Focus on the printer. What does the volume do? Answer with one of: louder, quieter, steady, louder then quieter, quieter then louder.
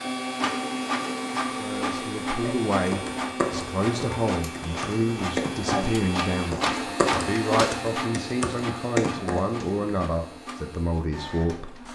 quieter.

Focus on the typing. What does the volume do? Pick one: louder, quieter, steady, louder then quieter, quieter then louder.
quieter then louder.